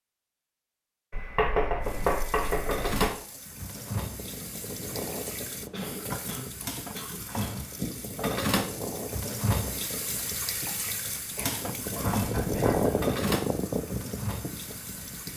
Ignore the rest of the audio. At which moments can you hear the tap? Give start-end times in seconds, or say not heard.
1.8-15.3.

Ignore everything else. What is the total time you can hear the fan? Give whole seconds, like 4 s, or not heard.
12 s.